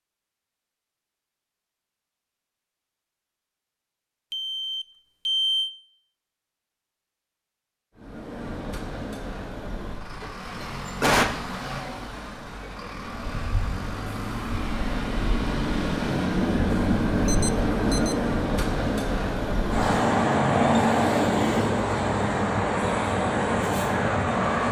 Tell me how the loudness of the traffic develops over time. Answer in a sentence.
The loudness of the traffic goes up.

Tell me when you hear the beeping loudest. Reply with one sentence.
The loudest moment of the beeping is at 5 seconds.